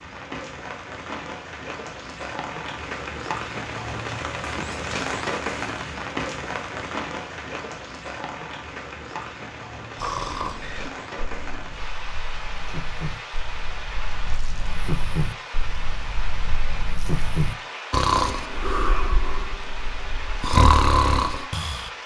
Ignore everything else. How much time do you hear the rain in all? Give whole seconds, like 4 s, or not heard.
22 s.